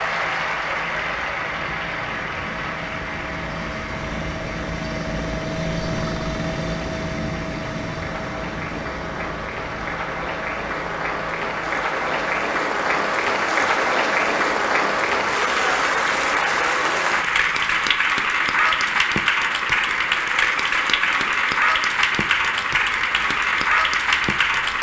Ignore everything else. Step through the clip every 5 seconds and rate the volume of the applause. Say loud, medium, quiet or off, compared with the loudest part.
medium, quiet, loud, loud, loud.